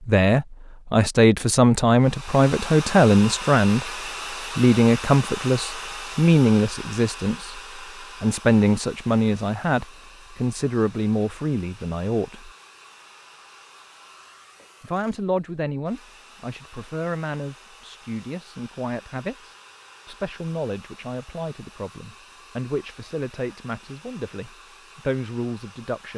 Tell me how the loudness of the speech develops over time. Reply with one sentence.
The loudness of the speech goes down.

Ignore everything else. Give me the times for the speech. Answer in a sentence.
The speech can be heard from 0.1 to 3.9 s, from 4.5 to 12.5 s and from 14.8 to 26.1 s.